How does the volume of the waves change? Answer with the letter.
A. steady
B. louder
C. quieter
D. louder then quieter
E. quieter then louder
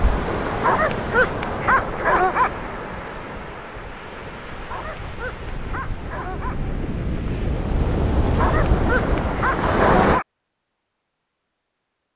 E.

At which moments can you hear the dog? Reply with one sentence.
The dog can be heard from 0.5 to 2.5 s, from 4.5 to 6.5 s and from 8.2 to 10.2 s.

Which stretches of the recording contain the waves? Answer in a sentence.
The waves can be heard from 0.0 to 10.2 s.